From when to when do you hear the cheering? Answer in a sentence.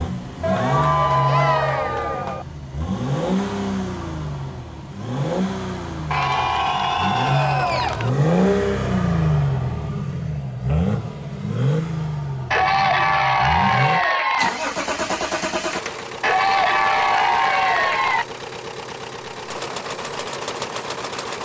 You can hear the cheering from 0.4 to 2.5 s, from 6.1 to 8.1 s, from 12.5 to 14.5 s and from 16.2 to 18.2 s.